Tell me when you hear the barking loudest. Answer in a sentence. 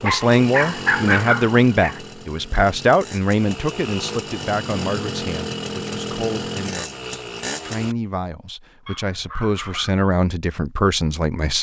The loudest moment of the barking is at 1 second.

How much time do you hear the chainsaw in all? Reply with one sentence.
You can hear the chainsaw for 8 seconds altogether.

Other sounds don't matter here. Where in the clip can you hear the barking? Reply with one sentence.
The barking can be heard from 0.0 to 1.9 s and from 8.8 to 9.9 s.